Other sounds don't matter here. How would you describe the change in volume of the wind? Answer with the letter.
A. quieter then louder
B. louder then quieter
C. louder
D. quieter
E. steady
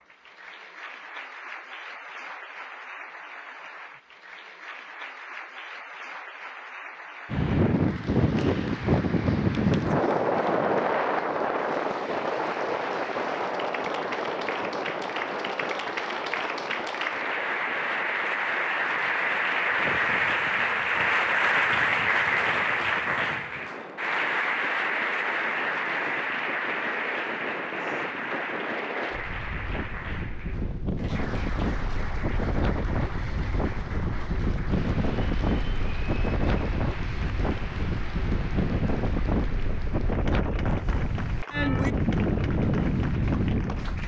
A.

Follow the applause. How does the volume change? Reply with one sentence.
The loudness of the applause goes up, then down.